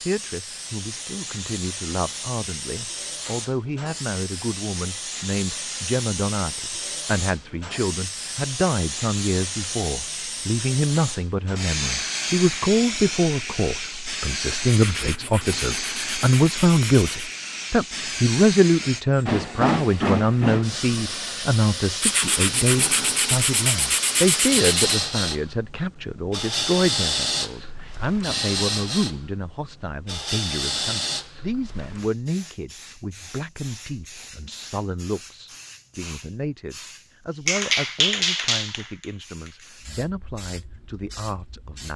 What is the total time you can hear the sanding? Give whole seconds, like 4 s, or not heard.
6 s.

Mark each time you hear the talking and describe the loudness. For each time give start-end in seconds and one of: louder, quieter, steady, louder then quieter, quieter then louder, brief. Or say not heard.
0.0-41.9 louder then quieter.